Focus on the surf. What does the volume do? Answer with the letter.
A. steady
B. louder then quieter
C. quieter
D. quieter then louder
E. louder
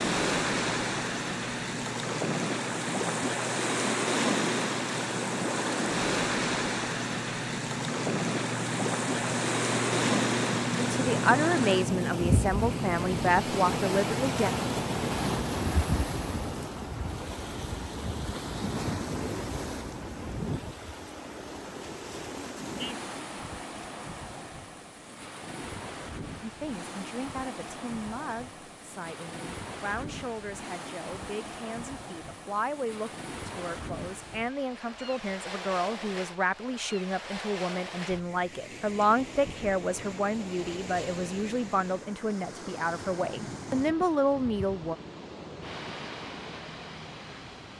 C.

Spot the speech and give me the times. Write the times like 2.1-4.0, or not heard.
10.8-14.5, 26.4-45.0.